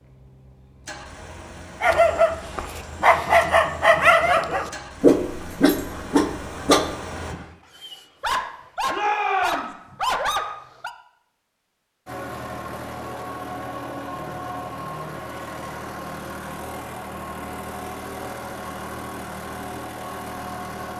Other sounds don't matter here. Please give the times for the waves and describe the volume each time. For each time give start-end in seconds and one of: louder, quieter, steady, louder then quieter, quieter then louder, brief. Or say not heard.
not heard.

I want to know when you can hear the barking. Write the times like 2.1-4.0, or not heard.
1.8-10.9.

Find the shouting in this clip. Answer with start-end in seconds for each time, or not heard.
8.9-9.8.